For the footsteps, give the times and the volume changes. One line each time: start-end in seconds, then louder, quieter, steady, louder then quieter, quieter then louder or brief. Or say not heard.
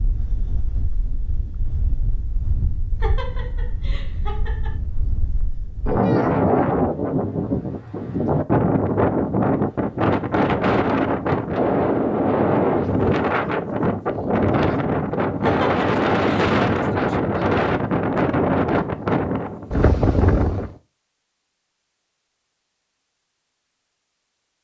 not heard.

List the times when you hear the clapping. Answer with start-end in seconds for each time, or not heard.
not heard.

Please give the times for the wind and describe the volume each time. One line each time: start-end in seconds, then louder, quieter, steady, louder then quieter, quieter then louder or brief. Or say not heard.
0.0-20.8 louder.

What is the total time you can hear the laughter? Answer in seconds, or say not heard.
3 s.